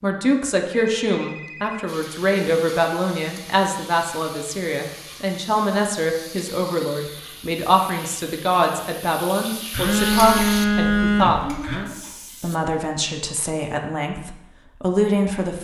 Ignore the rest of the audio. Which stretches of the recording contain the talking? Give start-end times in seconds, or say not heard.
0.0-11.4, 12.4-15.5.